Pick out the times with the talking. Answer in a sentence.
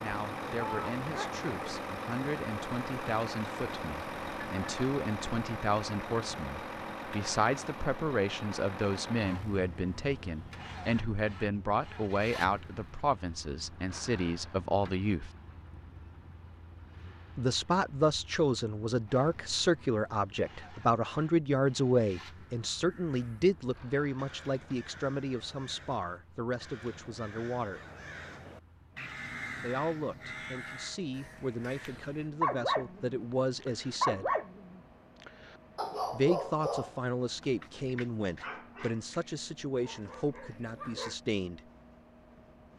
You can hear the talking from 0.0 to 15.3 s, from 17.4 to 27.8 s, from 29.6 to 34.3 s and from 36.1 to 41.6 s.